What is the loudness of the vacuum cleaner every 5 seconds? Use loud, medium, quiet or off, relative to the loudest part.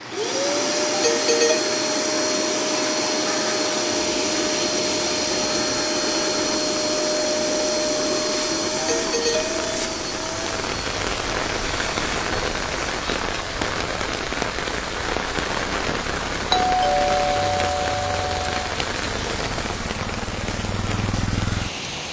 loud, loud, medium, off, off.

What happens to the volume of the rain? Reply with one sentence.
The loudness of the rain goes up.